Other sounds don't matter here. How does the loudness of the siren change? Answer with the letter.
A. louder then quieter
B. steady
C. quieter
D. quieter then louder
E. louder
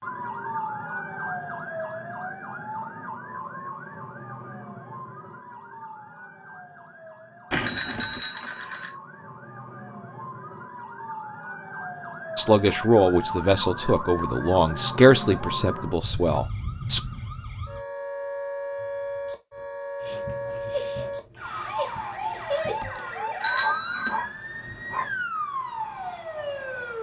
D.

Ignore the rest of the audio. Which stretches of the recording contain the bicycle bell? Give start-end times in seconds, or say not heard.
7.5-8.9, 22.2-24.1.